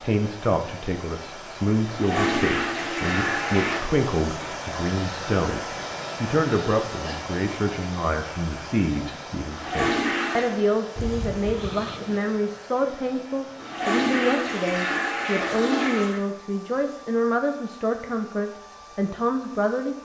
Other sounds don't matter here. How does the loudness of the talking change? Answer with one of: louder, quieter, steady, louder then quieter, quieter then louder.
steady.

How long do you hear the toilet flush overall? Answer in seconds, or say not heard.
6 s.